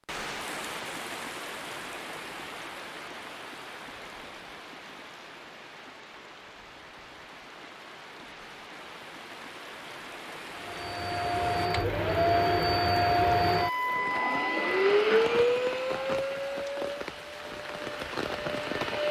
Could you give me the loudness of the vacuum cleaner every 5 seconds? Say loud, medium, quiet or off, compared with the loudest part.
off, off, loud, loud.